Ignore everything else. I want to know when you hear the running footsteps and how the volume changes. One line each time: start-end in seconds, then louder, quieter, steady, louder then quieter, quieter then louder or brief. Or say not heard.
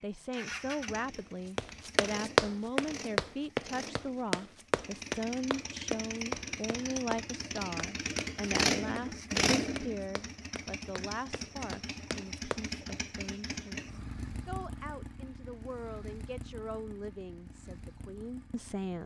1.6-12.7 quieter.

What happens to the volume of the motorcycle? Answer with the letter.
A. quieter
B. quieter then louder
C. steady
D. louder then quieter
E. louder
D.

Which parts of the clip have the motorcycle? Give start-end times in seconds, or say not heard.
0.0-19.0.